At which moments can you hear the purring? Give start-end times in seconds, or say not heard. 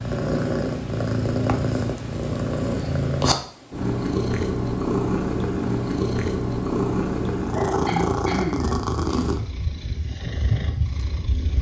0.0-11.5.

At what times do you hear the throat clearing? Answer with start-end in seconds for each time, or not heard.
7.5-8.8.